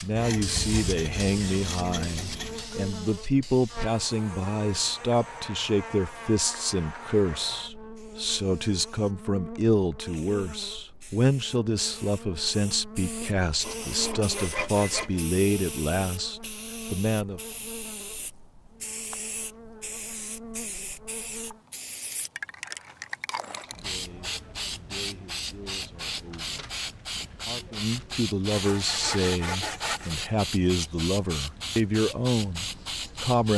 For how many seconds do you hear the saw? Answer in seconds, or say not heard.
6 s.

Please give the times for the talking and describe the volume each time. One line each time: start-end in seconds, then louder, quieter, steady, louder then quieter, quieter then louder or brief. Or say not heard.
0.0-17.4 steady
23.4-33.5 louder.